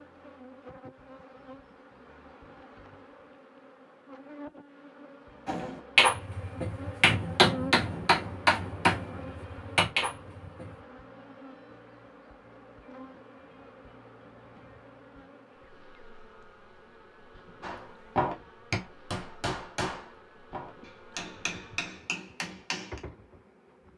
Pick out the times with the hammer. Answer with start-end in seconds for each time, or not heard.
5.5-10.8, 17.6-23.0.